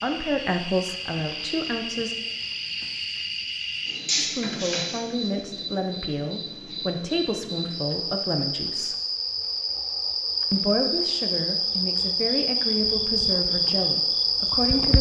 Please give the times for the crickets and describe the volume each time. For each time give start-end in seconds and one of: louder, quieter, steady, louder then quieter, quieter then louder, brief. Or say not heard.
0.0-14.9 louder.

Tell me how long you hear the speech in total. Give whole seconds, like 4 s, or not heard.
11 s.